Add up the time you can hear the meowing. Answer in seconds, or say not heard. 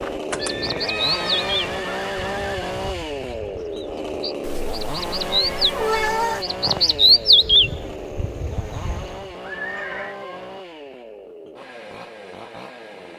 4 s.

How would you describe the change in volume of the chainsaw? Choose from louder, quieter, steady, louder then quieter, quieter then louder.
quieter.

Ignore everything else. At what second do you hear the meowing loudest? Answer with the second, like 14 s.
6 s.